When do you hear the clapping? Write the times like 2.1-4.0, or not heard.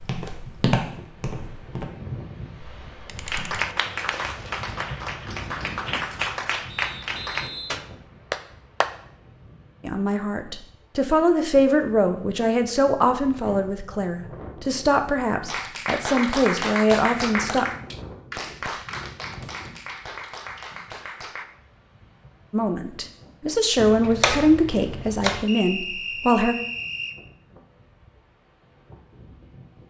3.2-9.0, 15.4-21.4.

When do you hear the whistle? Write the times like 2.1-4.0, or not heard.
6.7-7.8, 25.4-27.1.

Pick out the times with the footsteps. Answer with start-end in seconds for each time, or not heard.
0.0-1.9.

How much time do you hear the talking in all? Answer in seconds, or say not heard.
12 s.